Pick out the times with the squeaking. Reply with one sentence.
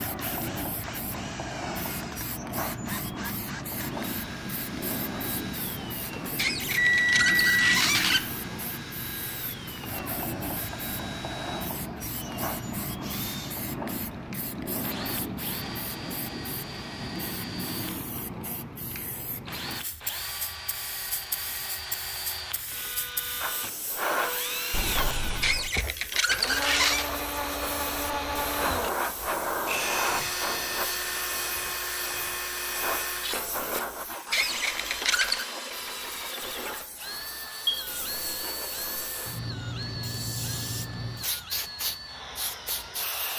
You can hear the squeaking from 6.3 to 8.2 s, from 25.4 to 27.1 s and from 34.3 to 35.5 s.